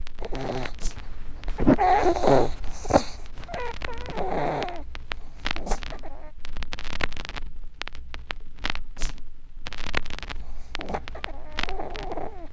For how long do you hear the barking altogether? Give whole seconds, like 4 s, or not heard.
8 s.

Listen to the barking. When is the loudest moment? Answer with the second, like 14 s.
2 s.